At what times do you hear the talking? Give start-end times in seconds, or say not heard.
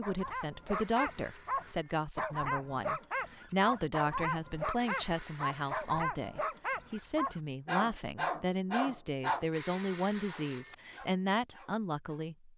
0.0-12.5.